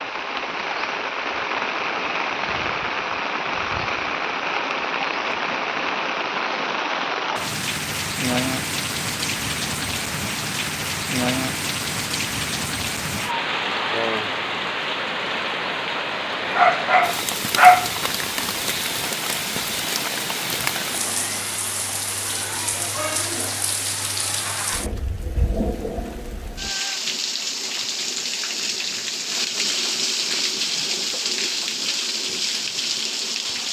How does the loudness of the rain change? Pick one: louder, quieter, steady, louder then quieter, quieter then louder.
steady.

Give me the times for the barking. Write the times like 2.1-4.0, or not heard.
16.6-17.9.